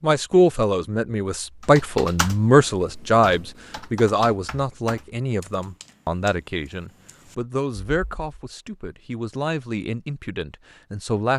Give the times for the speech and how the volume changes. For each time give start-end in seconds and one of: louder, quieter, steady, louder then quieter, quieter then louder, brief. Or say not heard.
0.0-11.3 quieter.